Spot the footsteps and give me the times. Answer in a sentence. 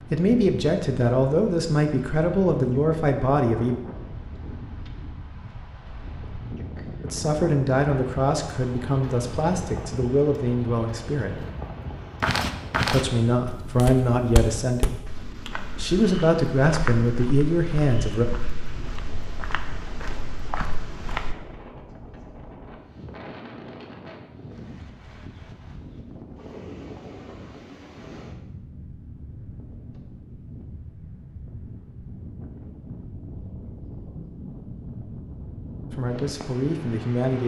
You can hear the footsteps from 12.2 to 21.4 s.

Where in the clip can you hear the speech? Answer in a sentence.
You can hear the speech from 0.0 to 3.8 s, from 7.0 to 11.4 s, from 12.8 to 18.2 s and from 35.9 to 37.4 s.